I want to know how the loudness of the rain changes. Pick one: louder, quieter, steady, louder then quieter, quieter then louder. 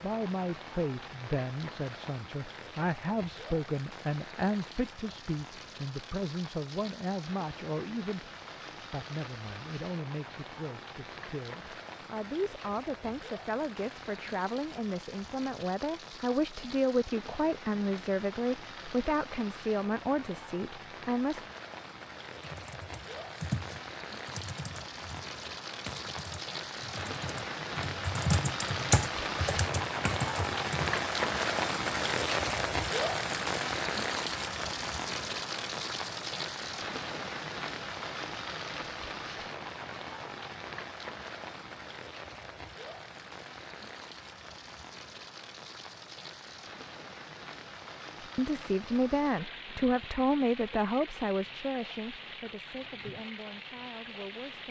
louder then quieter.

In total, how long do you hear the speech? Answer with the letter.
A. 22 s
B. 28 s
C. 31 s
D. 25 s
B.